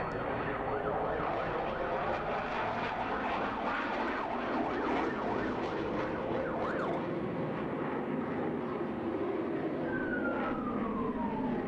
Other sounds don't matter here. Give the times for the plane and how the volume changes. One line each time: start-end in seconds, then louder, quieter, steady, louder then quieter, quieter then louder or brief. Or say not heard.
0.0-11.6 steady.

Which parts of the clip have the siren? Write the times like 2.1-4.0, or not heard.
0.0-7.0, 9.8-11.6.